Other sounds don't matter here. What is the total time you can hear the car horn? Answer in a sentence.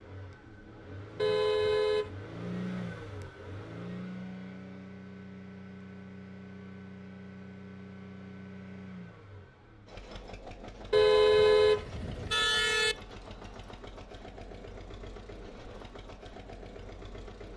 The car horn can be heard for 3 seconds in total.